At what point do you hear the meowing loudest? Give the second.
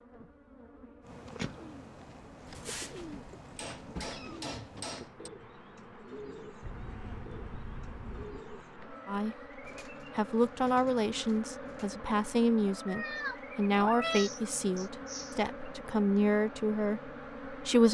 14 s.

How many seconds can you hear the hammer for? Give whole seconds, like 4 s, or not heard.
3 s.